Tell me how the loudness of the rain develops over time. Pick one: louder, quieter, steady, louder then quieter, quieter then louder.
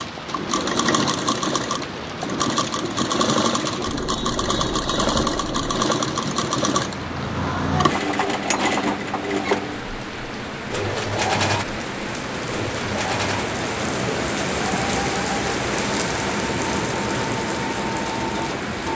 louder.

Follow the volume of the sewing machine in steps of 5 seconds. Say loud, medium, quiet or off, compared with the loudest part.
loud, loud, loud, medium.